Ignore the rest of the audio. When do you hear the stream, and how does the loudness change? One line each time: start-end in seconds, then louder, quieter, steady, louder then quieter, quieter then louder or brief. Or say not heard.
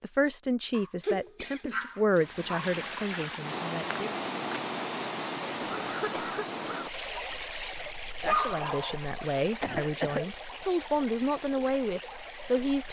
2.1-12.8 quieter.